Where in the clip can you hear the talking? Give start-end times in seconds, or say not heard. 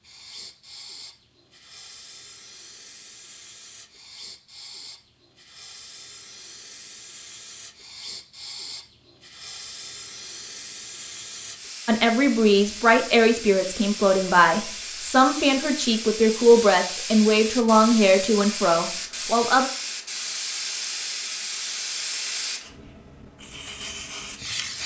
11.8-19.7.